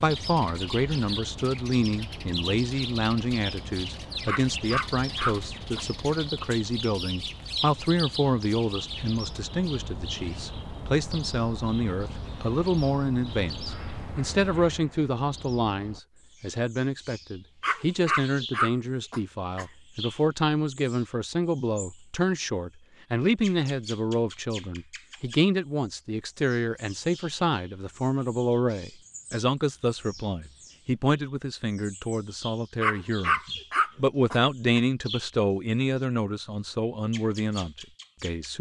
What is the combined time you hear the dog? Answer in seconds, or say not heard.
6 s.